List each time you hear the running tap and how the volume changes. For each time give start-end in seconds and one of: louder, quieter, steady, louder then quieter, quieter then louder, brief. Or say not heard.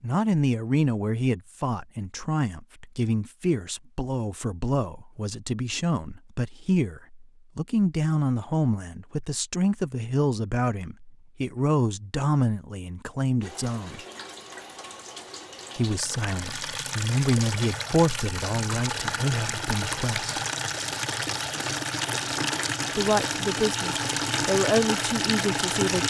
13.4-26.0 louder.